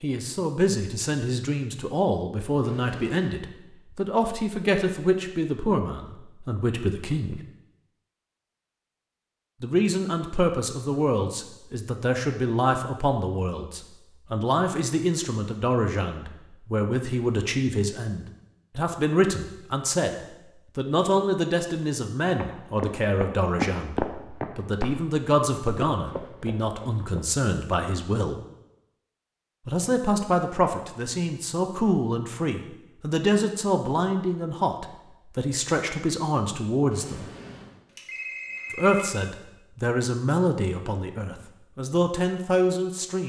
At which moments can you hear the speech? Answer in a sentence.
You can hear the speech from 0.0 to 7.4 s, from 9.6 to 28.4 s, from 29.6 to 37.3 s and from 38.7 to 43.2 s.